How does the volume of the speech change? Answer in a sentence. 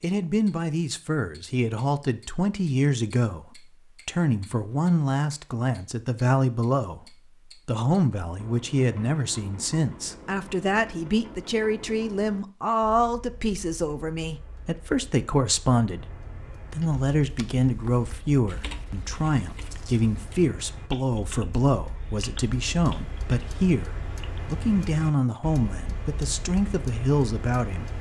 The loudness of the speech stays about the same.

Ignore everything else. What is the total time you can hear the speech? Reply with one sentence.
You can hear the speech for 28 seconds altogether.